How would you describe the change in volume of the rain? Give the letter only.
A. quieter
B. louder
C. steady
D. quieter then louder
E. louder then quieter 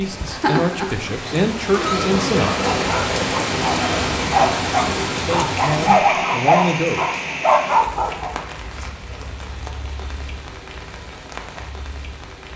A.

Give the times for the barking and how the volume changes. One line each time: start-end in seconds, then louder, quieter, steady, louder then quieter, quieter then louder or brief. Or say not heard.
2.6-8.3 louder.